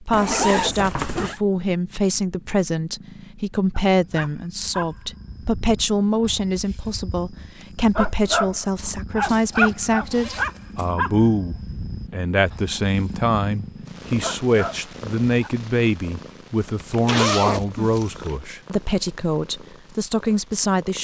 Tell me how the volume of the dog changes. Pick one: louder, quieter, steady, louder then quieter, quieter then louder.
louder then quieter.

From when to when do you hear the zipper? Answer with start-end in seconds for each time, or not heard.
0.1-1.4, 9.2-10.9, 16.8-18.4.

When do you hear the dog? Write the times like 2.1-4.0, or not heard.
3.9-15.5.